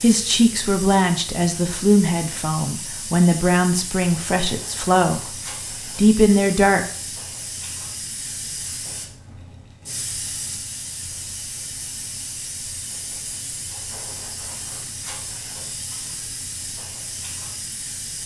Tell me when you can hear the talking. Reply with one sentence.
The talking can be heard from 0.0 to 5.3 s and from 6.0 to 6.8 s.